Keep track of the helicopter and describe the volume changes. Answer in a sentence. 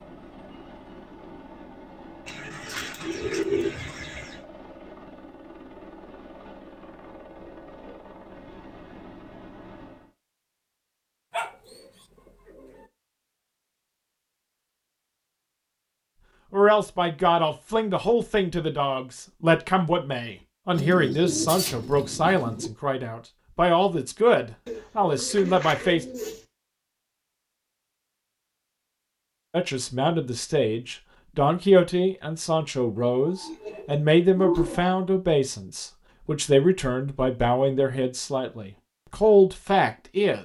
The volume of the helicopter stays about the same.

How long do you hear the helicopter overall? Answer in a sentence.
You can hear the helicopter for 10 seconds altogether.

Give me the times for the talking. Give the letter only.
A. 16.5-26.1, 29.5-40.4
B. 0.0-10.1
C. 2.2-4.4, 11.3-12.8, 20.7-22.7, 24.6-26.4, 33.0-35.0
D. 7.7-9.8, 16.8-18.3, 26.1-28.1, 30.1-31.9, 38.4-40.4
A.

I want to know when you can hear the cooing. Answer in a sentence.
The cooing can be heard from 2.2 to 4.4 s, from 11.3 to 12.8 s, from 20.7 to 22.7 s, from 24.6 to 26.4 s and from 33.0 to 35.0 s.